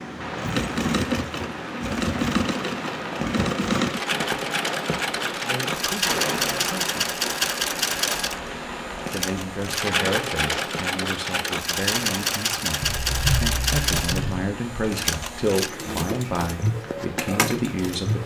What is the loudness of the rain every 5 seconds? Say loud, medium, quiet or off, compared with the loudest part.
loud, loud, medium, medium.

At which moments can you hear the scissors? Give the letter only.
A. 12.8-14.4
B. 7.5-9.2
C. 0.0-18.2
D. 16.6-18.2
A.